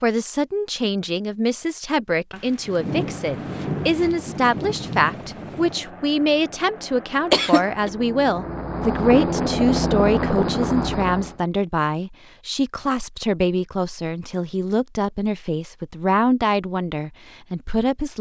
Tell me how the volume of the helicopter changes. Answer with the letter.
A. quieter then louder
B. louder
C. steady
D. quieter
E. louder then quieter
B.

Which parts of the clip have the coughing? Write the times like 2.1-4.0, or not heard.
7.3-7.9.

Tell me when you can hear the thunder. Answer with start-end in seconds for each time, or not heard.
2.3-5.8.